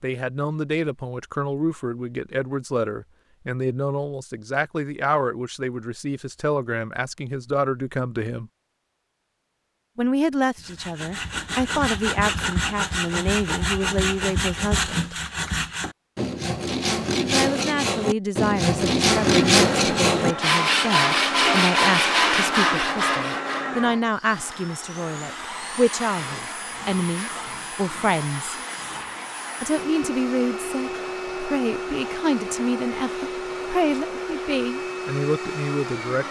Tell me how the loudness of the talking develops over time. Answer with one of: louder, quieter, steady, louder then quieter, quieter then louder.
steady.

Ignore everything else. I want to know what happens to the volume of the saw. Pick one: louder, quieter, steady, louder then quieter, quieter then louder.
louder.